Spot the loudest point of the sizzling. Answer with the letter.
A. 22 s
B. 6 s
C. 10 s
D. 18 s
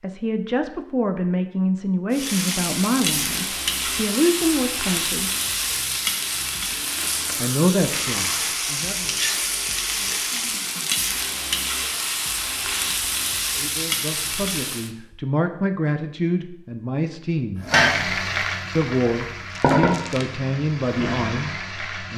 D.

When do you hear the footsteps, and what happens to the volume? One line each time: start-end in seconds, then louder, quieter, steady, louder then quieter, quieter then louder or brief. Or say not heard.
not heard.